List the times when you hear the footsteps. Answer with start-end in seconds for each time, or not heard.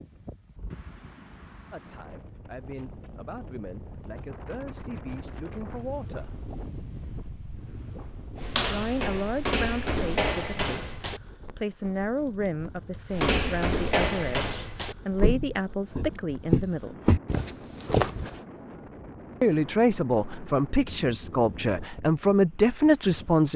8.3-11.2, 13.1-18.4.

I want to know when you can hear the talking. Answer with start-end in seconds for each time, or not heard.
1.7-6.3, 8.7-16.9, 19.4-23.5.